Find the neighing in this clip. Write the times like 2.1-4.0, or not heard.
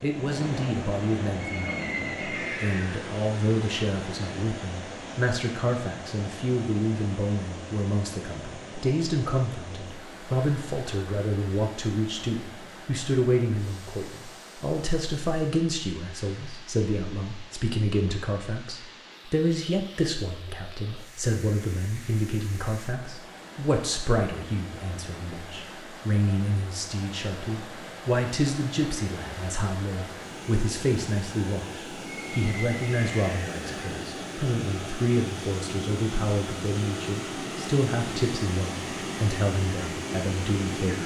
1.4-3.0, 32.1-34.0.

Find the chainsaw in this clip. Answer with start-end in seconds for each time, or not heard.
not heard.